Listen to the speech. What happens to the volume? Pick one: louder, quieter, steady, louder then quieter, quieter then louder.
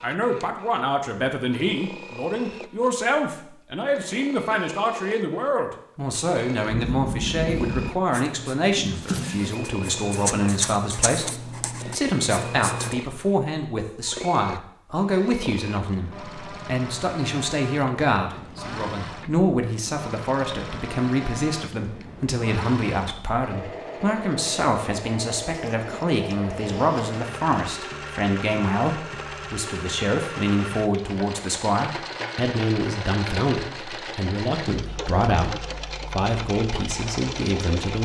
steady.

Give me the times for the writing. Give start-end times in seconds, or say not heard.
6.7-13.0.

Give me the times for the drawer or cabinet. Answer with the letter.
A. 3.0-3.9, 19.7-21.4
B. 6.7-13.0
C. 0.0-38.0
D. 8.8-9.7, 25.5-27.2
D.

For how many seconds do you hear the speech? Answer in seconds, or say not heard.
38 s.